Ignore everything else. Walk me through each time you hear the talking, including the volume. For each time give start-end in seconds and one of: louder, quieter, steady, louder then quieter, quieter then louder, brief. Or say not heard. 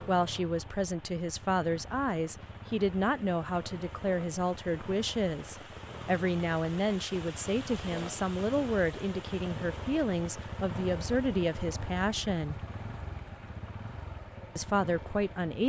0.1-12.6 steady
14.6-15.6 brief.